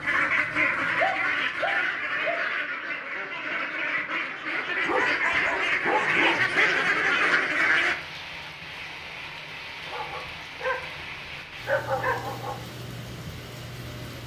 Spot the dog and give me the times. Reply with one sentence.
You can hear the dog from 0.9 to 2.4 s, from 4.8 to 6.5 s, from 9.8 to 10.8 s and from 11.7 to 12.6 s.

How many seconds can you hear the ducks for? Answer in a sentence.
The ducks can be heard for 8 seconds in total.